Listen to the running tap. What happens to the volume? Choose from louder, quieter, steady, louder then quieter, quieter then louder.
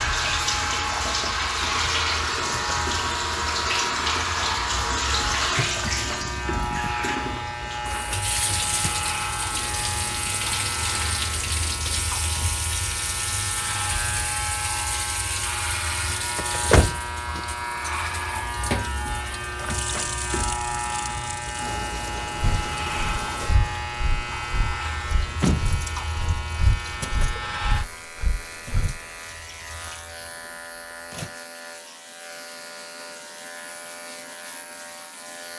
quieter.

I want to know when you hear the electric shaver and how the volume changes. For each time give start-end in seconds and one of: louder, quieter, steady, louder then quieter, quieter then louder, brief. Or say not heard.
0.0-35.5 quieter.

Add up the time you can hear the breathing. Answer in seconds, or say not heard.
7 s.